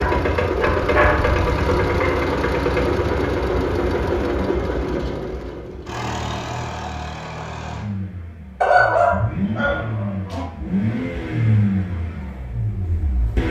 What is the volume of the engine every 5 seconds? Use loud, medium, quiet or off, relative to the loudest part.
loud, medium, loud.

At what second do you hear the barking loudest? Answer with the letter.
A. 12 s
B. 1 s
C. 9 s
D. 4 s
C.